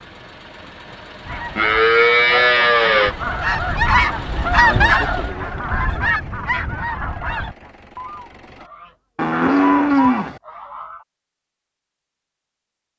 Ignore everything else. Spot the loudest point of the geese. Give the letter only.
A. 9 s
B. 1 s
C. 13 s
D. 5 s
D.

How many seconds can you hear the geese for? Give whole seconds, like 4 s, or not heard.
10 s.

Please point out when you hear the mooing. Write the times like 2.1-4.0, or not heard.
1.6-3.1, 9.2-10.4.